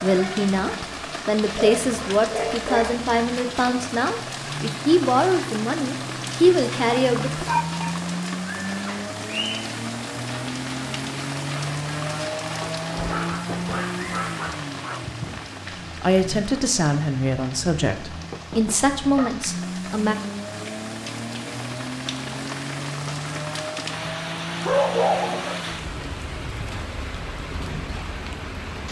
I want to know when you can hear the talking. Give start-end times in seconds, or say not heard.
0.0-7.5, 16.0-20.1.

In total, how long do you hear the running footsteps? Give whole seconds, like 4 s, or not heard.
not heard.